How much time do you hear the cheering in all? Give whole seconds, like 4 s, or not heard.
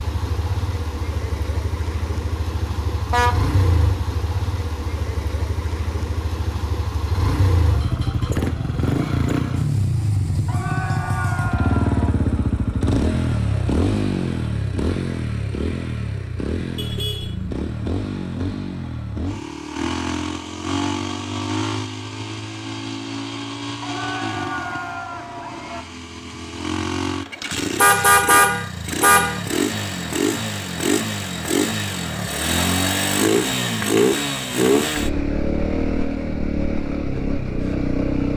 4 s.